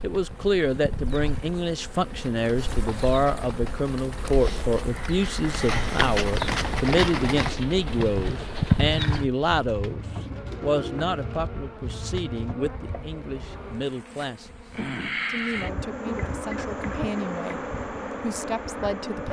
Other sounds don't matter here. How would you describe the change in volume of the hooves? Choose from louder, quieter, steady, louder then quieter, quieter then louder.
louder.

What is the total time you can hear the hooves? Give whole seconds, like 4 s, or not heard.
9 s.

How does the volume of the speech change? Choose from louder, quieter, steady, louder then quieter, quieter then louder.
quieter.